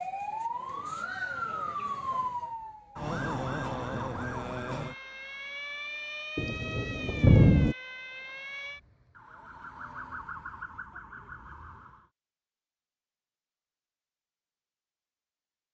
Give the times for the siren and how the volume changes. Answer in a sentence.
You can hear the siren from 0.0 to 12.1 s, getting quieter.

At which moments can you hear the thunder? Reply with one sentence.
The thunder can be heard from 6.3 to 7.8 s.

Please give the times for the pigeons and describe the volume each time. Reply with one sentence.
The pigeons can't be heard in this clip.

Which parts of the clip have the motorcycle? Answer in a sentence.
The motorcycle can't be heard in this clip.